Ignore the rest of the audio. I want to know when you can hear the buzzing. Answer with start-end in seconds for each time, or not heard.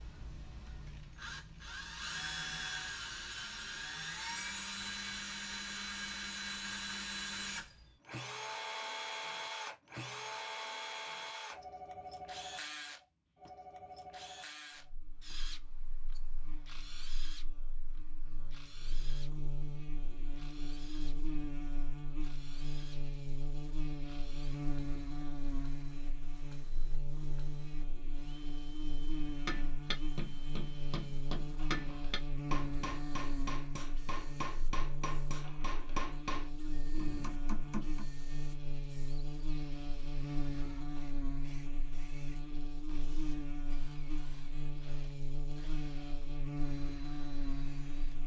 14.8-48.2.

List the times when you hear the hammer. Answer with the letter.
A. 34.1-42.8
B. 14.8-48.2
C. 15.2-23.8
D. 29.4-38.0
D.